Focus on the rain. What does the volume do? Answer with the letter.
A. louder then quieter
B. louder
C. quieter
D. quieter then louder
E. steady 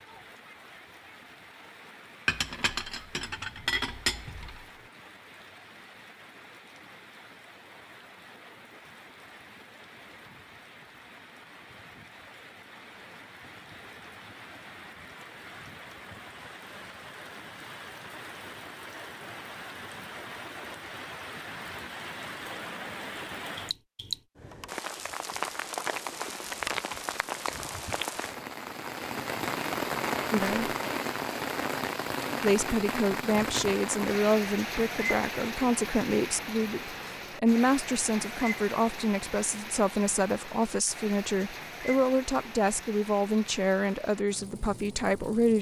A.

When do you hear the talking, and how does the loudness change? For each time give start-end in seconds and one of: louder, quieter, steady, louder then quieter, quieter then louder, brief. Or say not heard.
30.3-30.8 brief
32.4-45.5 steady.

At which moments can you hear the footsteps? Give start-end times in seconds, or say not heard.
not heard.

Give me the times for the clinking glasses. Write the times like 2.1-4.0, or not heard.
2.2-4.7.